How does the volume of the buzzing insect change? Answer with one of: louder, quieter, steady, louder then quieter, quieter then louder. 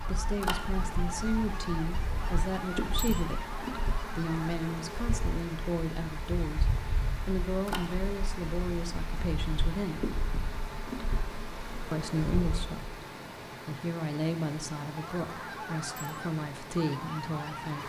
steady.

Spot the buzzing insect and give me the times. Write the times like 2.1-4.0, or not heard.
0.0-12.8.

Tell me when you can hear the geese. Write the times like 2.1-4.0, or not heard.
0.0-4.6, 14.8-17.8.